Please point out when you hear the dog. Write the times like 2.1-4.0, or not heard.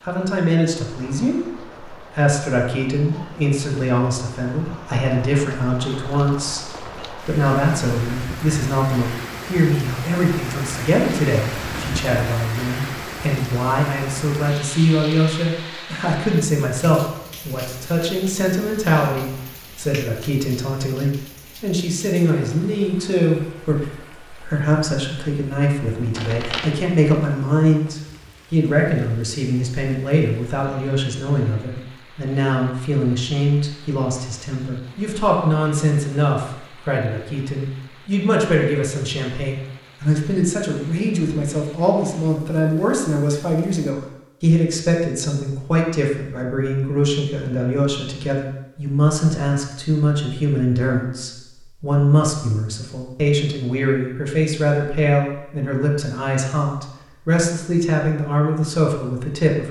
not heard.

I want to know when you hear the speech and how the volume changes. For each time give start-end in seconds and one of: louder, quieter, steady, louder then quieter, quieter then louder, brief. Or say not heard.
0.0-59.6 steady.